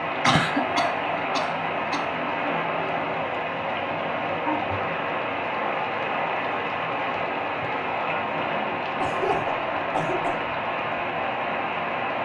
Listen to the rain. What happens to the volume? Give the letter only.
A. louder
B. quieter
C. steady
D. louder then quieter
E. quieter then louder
C.